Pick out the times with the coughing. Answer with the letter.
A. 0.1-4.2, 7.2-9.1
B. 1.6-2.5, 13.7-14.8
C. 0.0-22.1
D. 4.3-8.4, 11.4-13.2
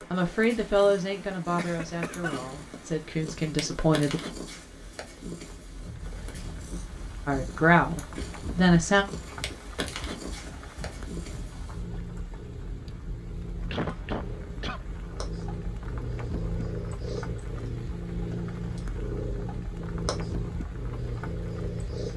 B.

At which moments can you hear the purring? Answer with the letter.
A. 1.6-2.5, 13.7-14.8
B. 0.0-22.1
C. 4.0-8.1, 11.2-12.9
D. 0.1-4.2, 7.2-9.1
B.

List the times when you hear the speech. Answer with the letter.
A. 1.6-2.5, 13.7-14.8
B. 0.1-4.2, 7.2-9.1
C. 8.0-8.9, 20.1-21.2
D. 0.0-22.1
B.